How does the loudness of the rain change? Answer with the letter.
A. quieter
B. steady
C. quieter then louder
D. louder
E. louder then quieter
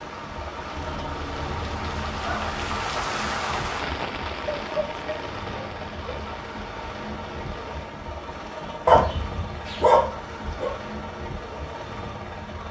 E.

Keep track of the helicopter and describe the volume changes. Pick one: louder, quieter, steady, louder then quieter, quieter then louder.
steady.